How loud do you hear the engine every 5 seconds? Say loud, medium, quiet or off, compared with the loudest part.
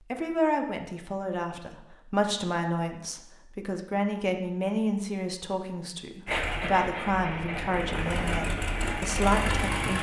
off, loud.